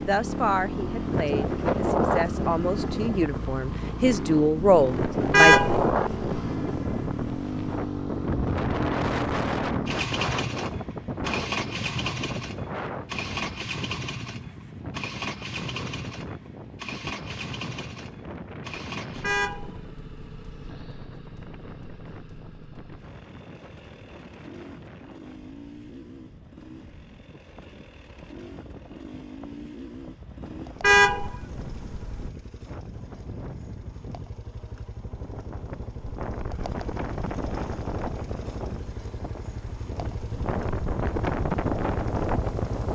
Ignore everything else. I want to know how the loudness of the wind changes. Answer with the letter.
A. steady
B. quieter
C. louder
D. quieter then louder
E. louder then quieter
D.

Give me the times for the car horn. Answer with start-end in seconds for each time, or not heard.
5.3-5.9, 19.2-20.7, 30.8-32.3.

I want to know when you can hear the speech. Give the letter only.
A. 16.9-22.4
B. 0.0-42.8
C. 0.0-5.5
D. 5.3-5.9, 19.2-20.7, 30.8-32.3
C.